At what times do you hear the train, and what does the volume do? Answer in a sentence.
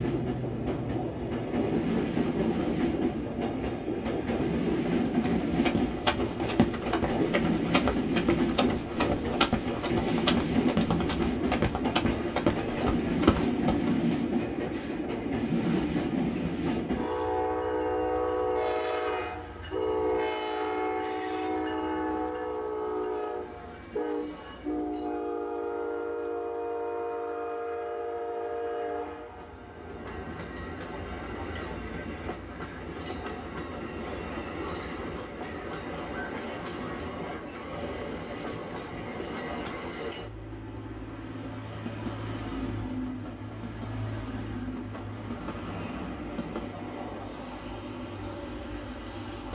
You can hear the train from 0.0 to 49.5 s, getting quieter.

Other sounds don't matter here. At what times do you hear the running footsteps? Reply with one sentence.
The running footsteps can be heard from 5.2 to 13.9 s.